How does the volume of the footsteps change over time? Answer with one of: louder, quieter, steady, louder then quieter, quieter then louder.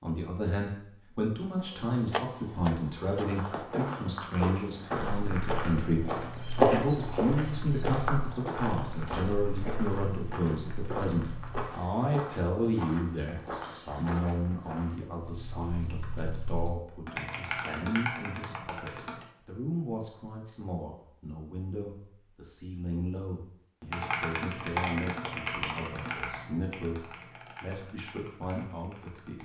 louder then quieter.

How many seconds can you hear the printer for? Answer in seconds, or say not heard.
2 s.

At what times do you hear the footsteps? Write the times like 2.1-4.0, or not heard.
3.1-15.1.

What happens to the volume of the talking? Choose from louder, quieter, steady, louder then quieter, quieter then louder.
quieter.